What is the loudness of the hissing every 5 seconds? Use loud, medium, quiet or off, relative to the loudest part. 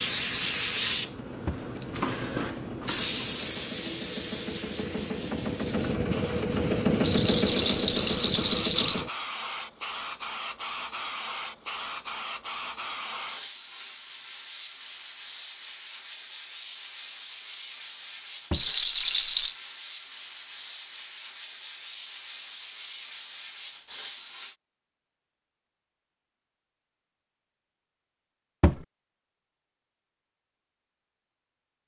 loud, medium, medium, medium, medium, off, off.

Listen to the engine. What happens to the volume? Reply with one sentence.
The volume of the engine goes up.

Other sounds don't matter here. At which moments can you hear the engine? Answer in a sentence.
The engine can be heard from 0.0 to 9.1 s.